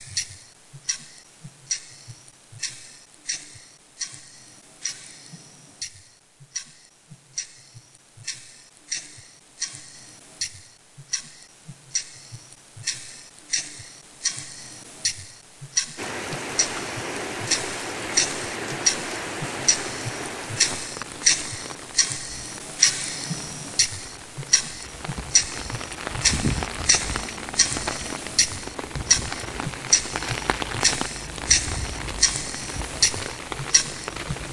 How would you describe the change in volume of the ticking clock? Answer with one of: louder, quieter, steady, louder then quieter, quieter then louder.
louder.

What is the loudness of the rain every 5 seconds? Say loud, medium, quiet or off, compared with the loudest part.
off, off, off, loud, medium, loud, loud.